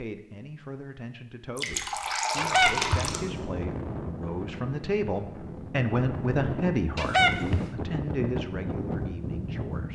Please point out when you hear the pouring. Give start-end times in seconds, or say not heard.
1.6-3.2.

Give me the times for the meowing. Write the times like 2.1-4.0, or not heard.
2.4-3.1, 7.0-7.7.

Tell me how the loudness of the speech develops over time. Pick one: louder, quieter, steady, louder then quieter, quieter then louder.
louder then quieter.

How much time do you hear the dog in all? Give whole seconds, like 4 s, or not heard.
not heard.